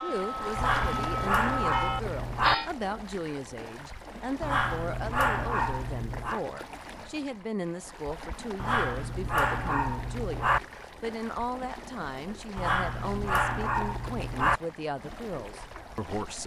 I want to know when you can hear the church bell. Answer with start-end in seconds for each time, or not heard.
0.0-2.7.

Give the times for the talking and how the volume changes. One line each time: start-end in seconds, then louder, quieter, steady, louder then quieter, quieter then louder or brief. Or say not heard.
0.0-16.4 steady.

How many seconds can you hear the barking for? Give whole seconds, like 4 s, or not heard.
8 s.